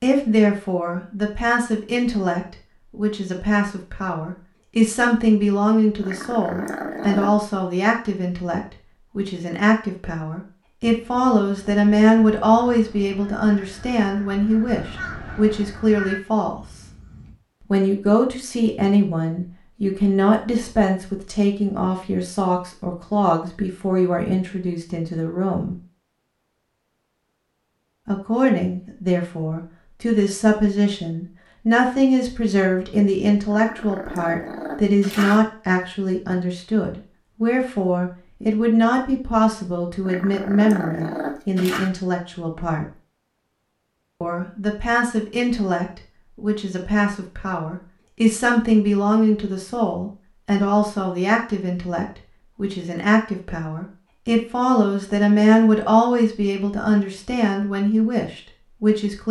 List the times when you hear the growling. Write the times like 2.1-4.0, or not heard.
6.0-7.3, 33.5-35.4, 40.0-41.9.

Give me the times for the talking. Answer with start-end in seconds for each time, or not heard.
0.0-16.6, 17.7-25.8, 28.1-42.9, 44.2-59.2.